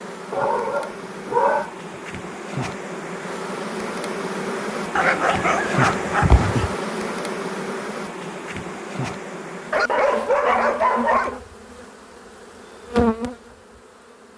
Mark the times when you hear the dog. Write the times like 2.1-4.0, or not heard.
0.3-1.8, 5.0-6.8, 9.7-11.4.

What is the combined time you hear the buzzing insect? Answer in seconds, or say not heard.
14 s.